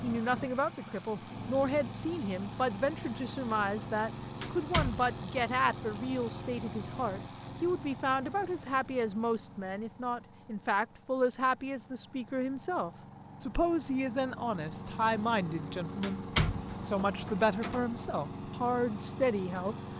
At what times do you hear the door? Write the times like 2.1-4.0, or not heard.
4.4-5.5, 16.0-17.9.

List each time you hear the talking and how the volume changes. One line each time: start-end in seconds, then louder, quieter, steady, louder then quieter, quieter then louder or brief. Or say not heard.
0.0-19.8 steady.